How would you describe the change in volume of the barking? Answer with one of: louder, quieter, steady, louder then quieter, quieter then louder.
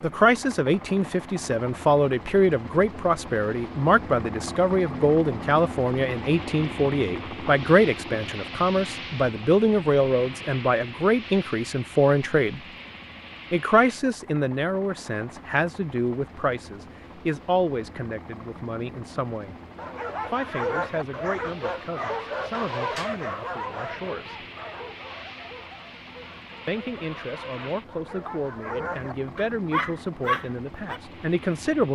quieter then louder.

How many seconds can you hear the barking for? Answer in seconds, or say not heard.
11 s.